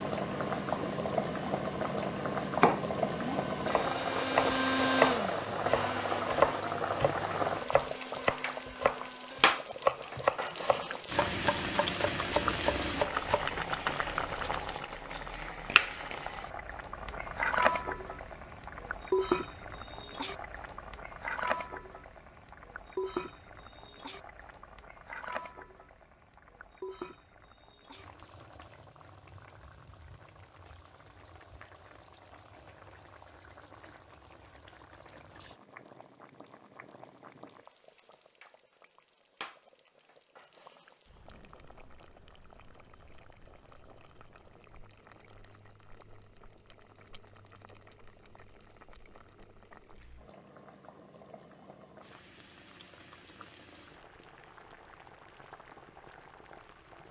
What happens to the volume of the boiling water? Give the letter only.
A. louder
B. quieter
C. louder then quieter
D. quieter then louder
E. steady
B.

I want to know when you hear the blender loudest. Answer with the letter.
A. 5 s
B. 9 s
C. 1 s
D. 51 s
A.